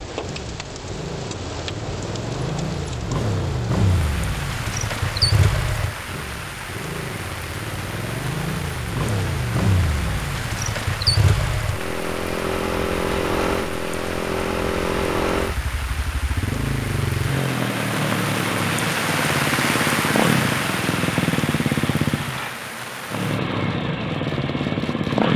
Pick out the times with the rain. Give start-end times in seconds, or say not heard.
0.0-25.3.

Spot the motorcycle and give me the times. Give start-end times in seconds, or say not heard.
0.0-25.3.